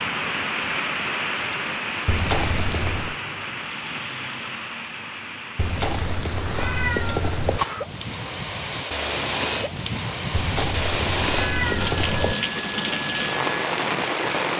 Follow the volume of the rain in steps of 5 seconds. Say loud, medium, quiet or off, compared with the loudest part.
loud, medium, loud.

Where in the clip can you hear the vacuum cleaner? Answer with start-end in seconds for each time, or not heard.
7.5-14.5.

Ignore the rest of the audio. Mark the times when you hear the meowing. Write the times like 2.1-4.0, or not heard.
2.0-3.1, 5.5-7.6, 10.3-12.3.